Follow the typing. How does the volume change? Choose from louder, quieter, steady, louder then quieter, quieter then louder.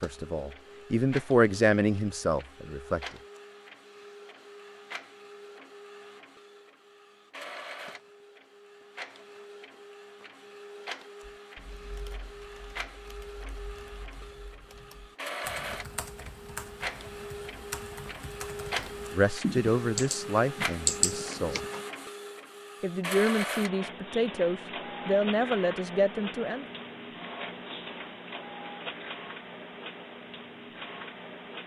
louder.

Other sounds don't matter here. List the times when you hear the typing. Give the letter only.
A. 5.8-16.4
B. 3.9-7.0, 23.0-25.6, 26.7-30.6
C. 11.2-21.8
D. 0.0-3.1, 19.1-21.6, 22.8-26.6
C.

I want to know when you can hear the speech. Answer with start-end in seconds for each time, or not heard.
0.0-3.1, 19.1-21.6, 22.8-26.6.